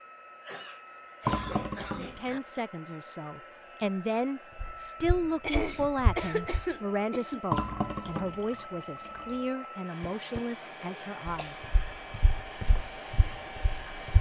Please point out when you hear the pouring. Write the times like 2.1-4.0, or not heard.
1.2-2.4, 7.5-9.3.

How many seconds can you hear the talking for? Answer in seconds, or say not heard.
10 s.